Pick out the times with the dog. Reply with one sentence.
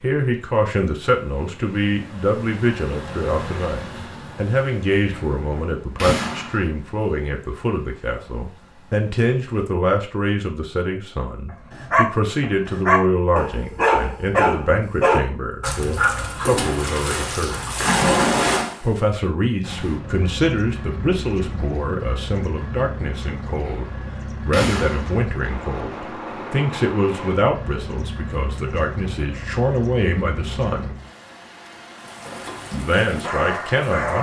You can hear the dog from 11.7 to 19.1 s and from 32.0 to 34.1 s.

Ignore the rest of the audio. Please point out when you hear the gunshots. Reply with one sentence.
You can hear the gunshots from 5.1 to 6.7 s and from 23.6 to 25.2 s.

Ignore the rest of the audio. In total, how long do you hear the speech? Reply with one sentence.
The speech can be heard for 31 seconds in total.